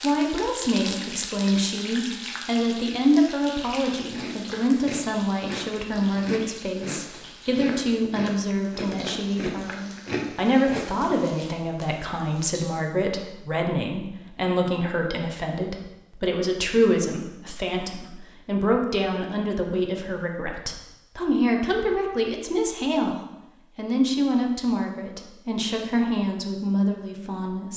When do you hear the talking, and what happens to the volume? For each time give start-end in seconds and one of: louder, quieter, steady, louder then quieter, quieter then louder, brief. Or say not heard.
0.0-27.7 steady.